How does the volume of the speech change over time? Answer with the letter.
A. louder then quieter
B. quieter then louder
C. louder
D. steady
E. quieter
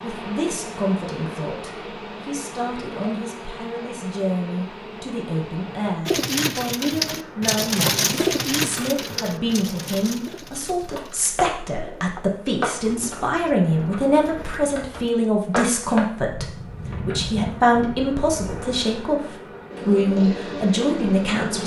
C.